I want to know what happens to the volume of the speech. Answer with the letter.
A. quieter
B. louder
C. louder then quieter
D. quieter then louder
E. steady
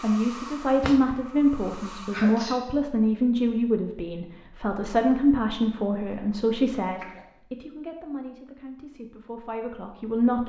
A.